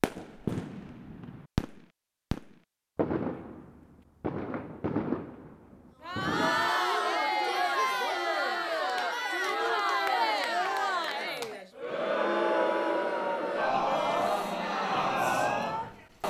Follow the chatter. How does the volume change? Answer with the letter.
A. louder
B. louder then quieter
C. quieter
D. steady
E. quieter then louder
D.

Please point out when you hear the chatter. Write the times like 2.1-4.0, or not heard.
6.0-16.2.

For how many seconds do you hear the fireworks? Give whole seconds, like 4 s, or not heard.
7 s.